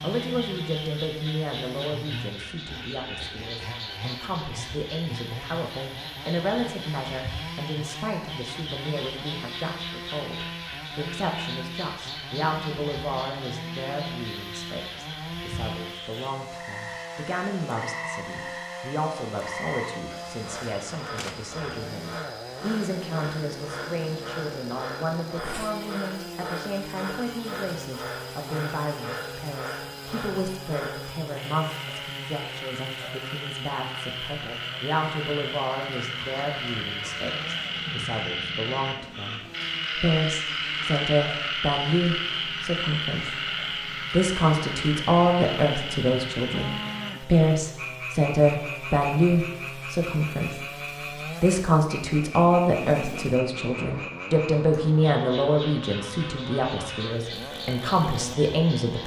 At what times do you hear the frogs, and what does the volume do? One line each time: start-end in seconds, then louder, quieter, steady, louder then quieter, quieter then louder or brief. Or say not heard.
0.0-59.0 louder then quieter.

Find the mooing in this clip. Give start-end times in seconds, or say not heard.
46.5-47.3.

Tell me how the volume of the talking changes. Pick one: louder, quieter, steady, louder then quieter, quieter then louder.
louder.